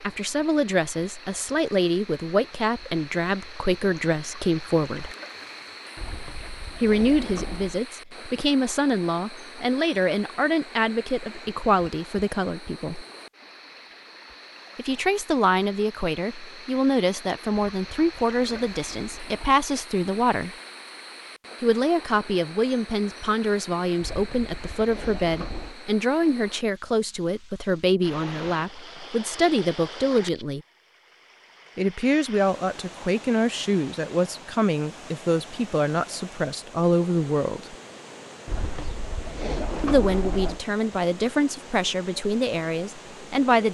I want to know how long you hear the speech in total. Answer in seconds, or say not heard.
36 s.